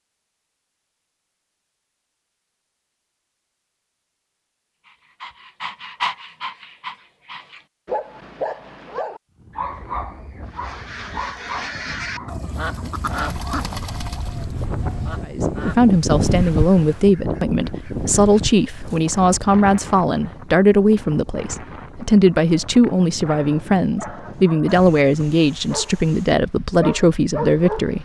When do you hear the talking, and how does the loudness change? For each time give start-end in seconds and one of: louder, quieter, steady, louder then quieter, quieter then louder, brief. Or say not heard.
15.2-27.9 steady.